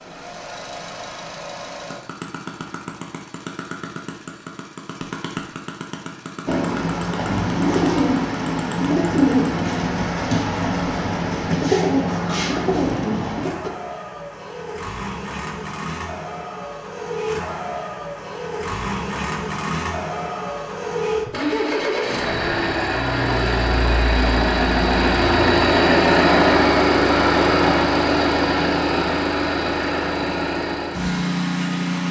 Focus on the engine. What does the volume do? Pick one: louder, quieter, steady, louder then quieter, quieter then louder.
louder.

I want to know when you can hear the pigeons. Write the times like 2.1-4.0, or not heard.
6.5-13.7.